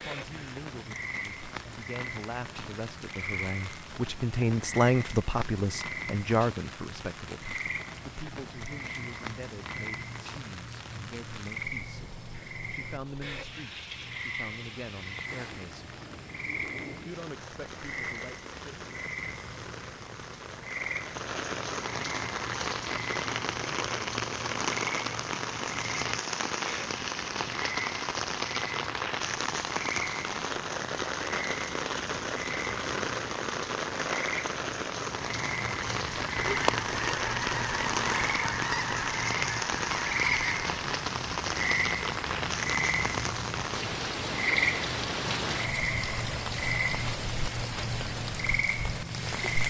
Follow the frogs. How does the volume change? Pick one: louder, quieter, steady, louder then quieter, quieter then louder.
louder.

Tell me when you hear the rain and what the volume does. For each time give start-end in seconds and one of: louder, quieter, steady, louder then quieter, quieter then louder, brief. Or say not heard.
0.0-49.6 louder.